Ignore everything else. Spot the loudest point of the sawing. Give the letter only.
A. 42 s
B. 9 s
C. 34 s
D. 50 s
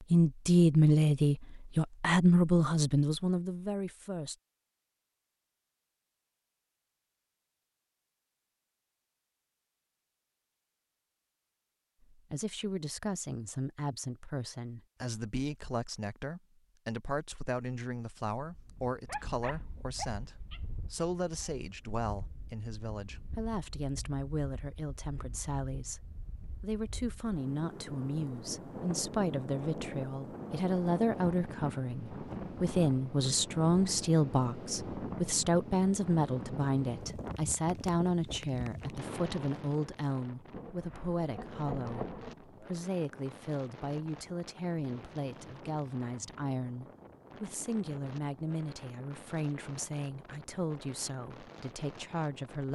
A.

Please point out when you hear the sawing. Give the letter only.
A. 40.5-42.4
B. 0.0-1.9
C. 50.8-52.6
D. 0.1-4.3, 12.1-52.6
A.